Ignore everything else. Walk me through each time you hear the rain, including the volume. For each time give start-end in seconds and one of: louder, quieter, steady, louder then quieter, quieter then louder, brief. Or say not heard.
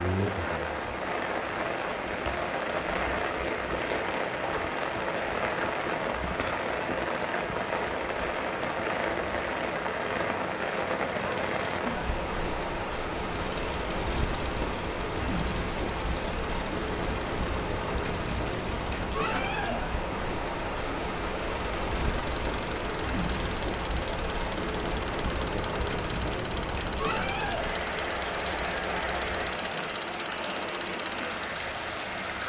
0.0-32.4 steady.